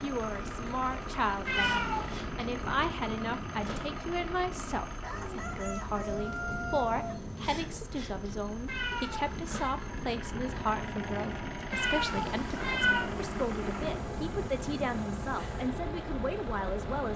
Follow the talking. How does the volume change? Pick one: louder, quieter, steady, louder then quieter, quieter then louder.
steady.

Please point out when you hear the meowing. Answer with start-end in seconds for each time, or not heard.
1.4-2.2, 8.7-9.7, 11.7-13.1.